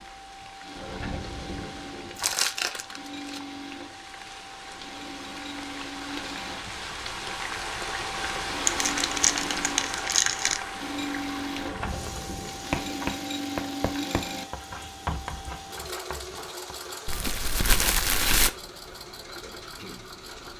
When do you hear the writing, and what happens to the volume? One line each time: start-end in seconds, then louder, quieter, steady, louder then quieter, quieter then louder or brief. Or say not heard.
11.6-16.9 quieter.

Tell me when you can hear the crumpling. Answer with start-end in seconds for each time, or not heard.
2.1-3.4, 8.7-10.6, 17.1-18.5.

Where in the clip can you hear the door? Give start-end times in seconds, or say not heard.
0.8-2.4, 11.6-13.2.